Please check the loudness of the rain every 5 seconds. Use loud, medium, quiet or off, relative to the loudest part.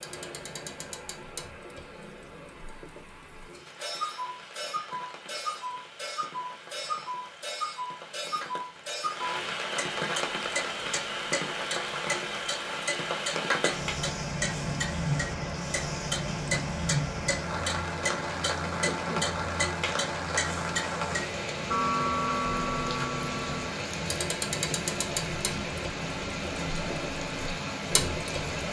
quiet, medium, loud, loud, loud, loud.